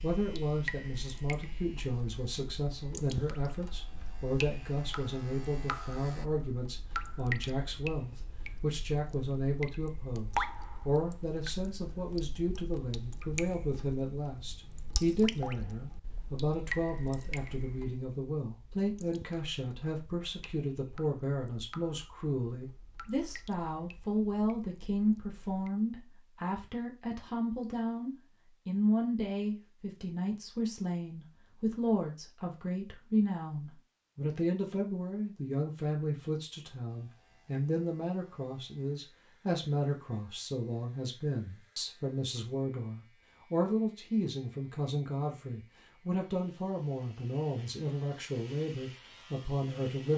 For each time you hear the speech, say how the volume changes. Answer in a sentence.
You can hear the speech from 0.0 to 50.1 s, at a steady volume.